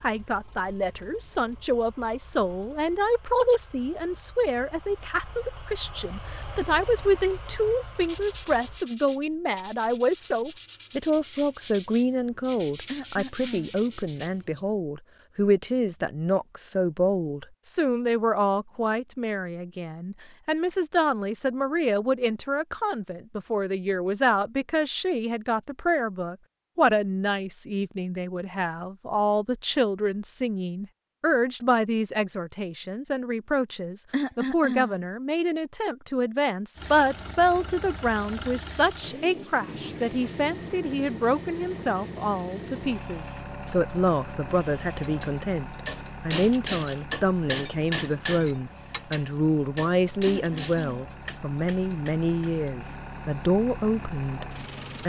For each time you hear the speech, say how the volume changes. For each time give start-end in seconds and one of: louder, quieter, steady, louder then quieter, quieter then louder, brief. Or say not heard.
0.0-54.5 steady.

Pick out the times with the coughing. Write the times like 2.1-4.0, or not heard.
12.8-13.8, 34.1-35.0, 50.2-51.0.